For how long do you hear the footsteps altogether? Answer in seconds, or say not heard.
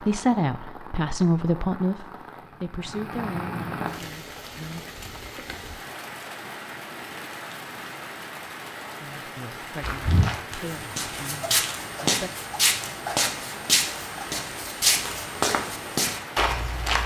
7 s.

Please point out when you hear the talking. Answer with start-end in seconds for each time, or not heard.
0.0-4.8, 9.0-12.3.